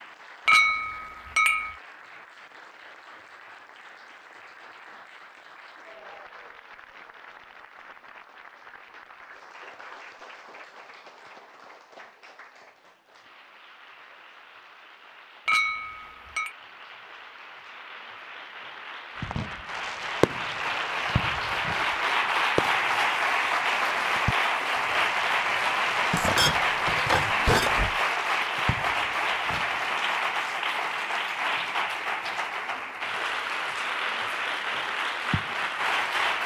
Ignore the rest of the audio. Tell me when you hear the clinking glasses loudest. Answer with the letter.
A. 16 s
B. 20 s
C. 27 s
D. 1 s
D.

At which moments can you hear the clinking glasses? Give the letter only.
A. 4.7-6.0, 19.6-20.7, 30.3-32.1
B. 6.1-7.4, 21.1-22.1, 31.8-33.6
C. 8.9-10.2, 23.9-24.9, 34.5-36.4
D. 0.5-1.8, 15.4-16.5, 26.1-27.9
D.